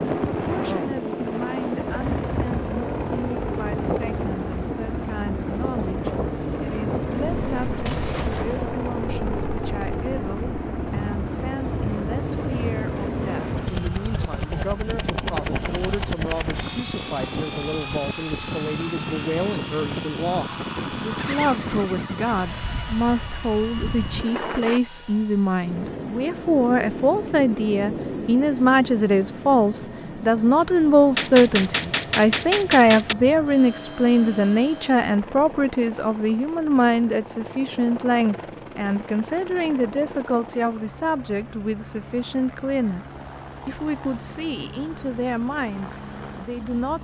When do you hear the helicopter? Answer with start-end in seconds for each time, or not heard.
0.0-47.0.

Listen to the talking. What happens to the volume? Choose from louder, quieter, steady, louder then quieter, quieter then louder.
louder then quieter.